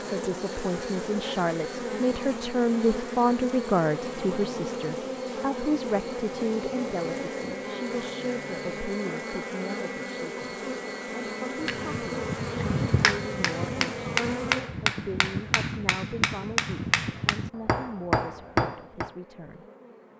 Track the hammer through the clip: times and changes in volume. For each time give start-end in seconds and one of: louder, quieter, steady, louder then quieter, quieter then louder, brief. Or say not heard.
11.6-19.1 steady.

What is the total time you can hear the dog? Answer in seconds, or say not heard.
not heard.